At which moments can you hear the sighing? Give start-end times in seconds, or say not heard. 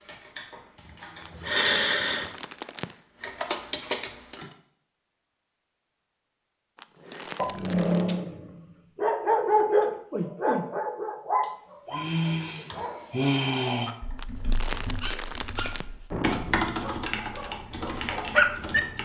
0.8-2.3, 11.4-13.9.